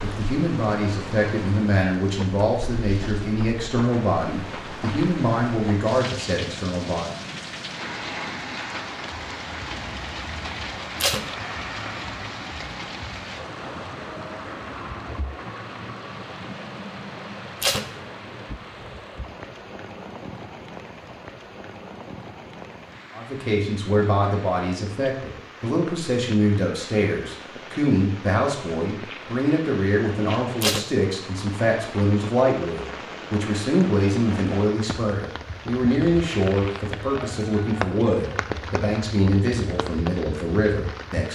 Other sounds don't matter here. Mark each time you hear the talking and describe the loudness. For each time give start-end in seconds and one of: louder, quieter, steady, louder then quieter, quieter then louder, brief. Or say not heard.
0.0-7.1 steady
23.1-41.3 steady.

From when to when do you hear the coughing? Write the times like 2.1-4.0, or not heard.
not heard.